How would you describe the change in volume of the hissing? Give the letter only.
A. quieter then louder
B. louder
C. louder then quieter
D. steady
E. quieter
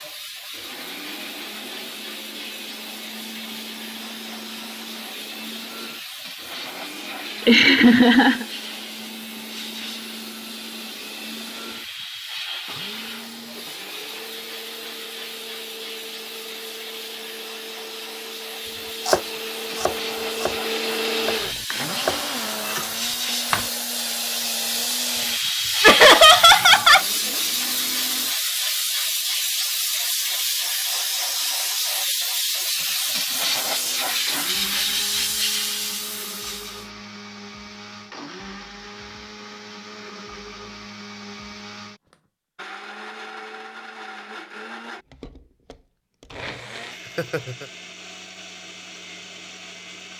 B.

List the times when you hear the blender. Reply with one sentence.
You can hear the blender from 0.0 to 28.4 s and from 33.3 to 50.1 s.